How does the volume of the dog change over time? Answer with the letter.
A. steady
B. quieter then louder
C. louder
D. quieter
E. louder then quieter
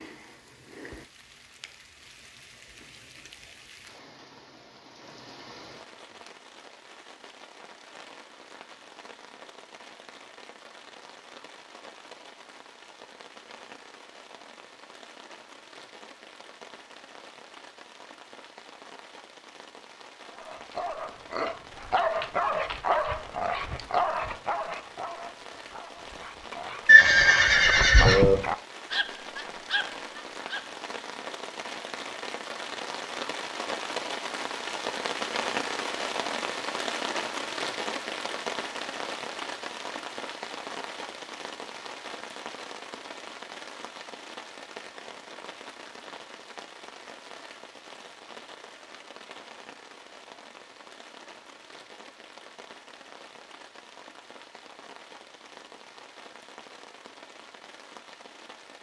B.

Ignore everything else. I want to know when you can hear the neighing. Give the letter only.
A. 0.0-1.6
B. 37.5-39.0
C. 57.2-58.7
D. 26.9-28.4
D.